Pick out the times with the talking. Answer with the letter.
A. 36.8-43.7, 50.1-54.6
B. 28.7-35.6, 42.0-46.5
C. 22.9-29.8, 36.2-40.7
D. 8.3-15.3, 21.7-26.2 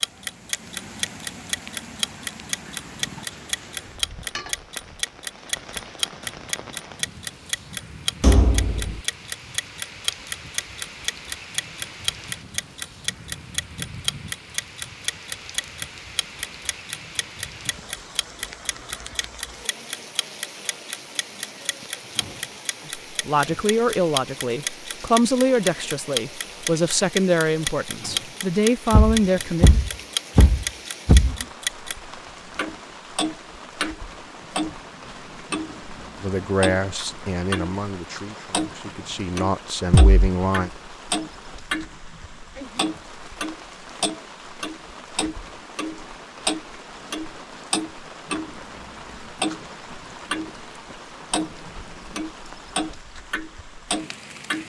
C.